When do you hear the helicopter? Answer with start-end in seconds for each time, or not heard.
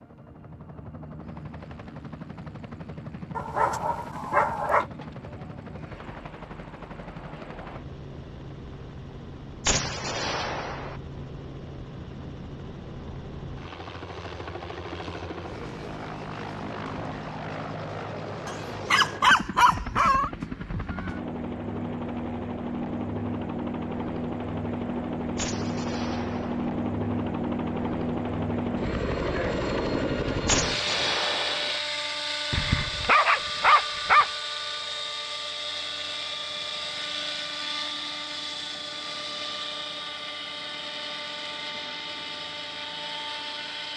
0.0-43.9.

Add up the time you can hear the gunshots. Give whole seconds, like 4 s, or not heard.
4 s.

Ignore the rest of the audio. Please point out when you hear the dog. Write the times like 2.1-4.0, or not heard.
3.4-4.8, 18.4-20.3, 32.5-34.3.